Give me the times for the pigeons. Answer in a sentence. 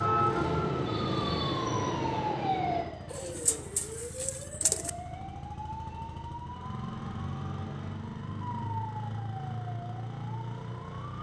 You can hear the pigeons from 3.1 to 4.9 s.